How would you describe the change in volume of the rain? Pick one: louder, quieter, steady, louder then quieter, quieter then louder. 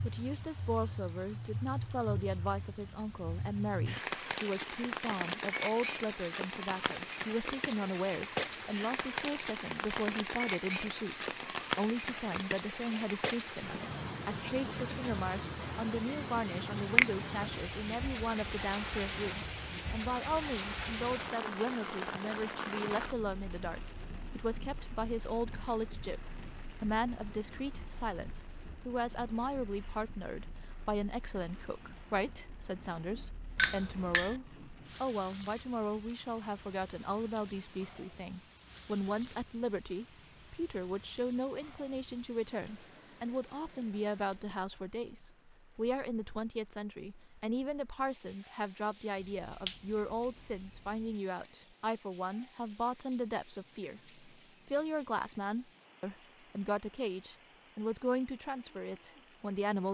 quieter.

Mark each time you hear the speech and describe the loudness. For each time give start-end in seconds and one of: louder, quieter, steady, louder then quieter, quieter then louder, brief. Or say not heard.
0.1-59.8 steady.